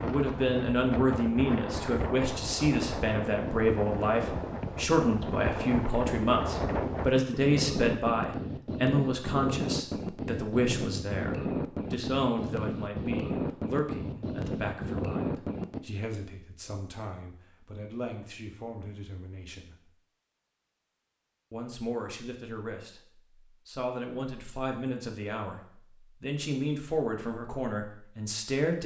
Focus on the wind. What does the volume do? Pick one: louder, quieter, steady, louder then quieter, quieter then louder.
steady.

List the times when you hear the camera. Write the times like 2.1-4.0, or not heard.
not heard.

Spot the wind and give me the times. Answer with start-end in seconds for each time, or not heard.
0.0-15.8.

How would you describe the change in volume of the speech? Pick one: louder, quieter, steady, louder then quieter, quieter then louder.
quieter then louder.